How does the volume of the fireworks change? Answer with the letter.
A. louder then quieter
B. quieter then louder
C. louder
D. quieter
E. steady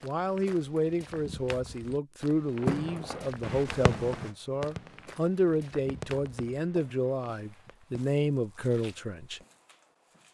A.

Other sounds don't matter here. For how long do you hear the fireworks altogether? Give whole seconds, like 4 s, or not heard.
5 s.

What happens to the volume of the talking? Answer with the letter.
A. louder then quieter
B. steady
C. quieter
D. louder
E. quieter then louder
B.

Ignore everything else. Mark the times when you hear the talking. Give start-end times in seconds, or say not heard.
0.0-9.4.